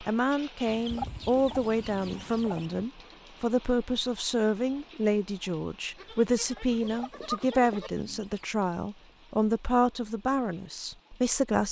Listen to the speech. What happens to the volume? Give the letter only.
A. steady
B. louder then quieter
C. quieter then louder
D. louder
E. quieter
A.